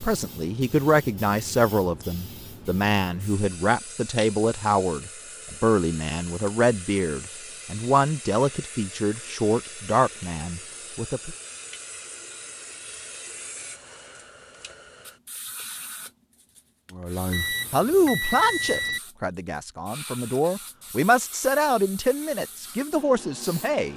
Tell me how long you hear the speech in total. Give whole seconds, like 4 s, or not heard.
18 s.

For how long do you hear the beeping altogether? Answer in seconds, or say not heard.
2 s.